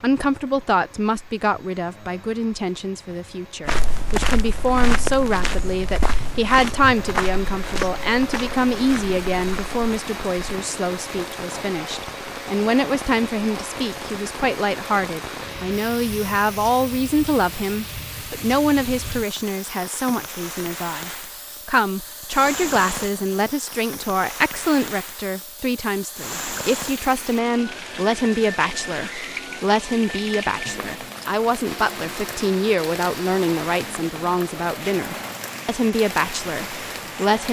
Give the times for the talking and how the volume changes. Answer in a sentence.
You can hear the talking from 0.0 to 37.4 s, at a steady volume.